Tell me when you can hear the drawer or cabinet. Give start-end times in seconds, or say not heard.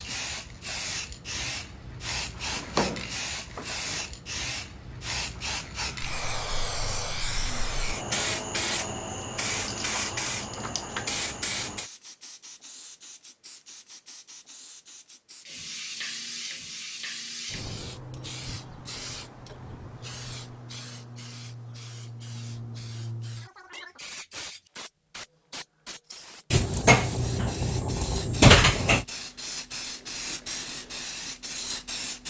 2.4-4.0, 26.5-29.1.